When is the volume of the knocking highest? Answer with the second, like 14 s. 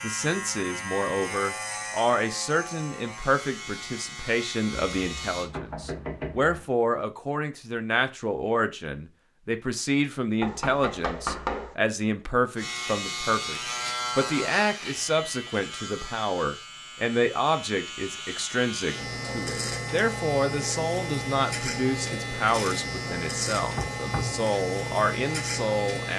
11 s.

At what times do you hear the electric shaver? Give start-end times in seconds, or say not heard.
0.0-5.5, 12.6-26.1.